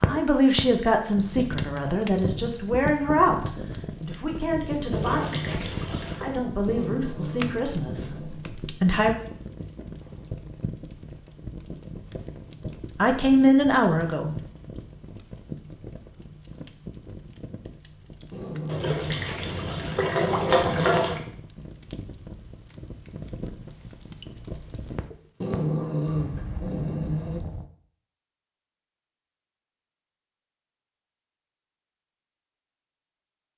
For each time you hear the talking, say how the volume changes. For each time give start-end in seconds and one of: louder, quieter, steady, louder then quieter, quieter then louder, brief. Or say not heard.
0.0-9.2 quieter
12.9-14.3 brief.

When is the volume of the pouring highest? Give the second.
21 s.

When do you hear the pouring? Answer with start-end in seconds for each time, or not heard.
4.9-6.3, 18.6-21.2.